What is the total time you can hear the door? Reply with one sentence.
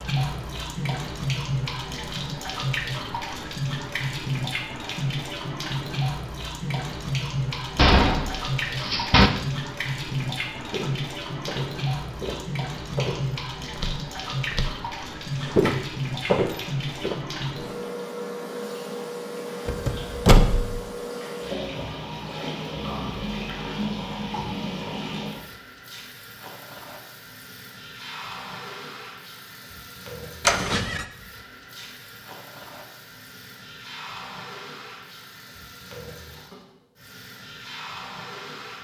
The door can be heard for 3 seconds in total.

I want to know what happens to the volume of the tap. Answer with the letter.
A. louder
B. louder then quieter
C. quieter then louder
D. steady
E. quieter
E.